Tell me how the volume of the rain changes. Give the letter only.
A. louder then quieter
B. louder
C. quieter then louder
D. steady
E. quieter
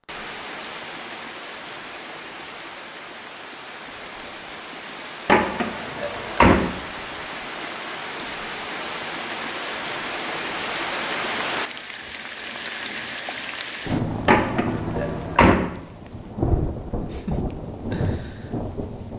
B.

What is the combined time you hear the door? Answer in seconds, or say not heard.
3 s.